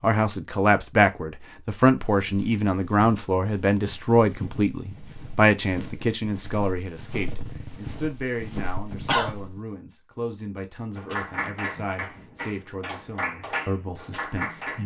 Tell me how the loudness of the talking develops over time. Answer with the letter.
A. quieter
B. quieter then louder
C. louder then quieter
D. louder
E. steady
A.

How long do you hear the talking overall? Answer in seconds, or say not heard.
15 s.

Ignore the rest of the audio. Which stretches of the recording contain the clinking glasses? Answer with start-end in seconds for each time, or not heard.
not heard.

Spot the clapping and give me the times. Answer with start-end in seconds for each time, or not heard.
10.9-14.8.